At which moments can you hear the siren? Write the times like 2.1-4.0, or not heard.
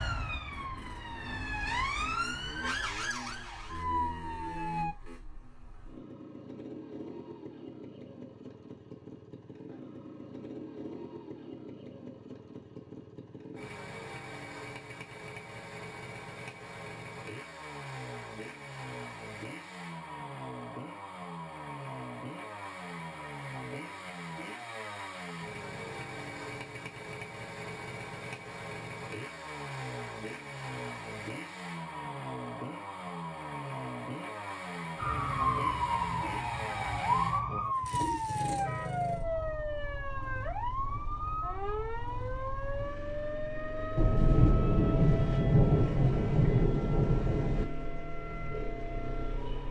0.0-5.0, 35.0-49.6.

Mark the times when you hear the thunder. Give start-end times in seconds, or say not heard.
44.0-47.6.